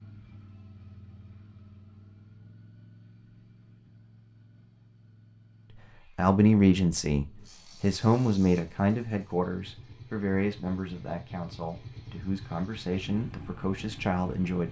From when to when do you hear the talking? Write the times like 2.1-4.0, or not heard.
6.2-14.6.